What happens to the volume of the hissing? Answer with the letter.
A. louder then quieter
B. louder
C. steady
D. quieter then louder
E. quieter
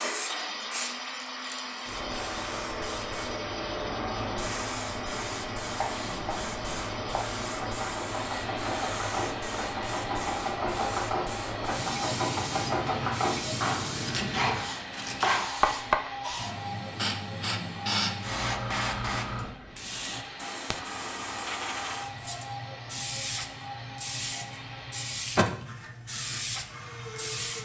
C.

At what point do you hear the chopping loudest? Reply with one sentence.
The volume of the chopping peaks at 16 seconds.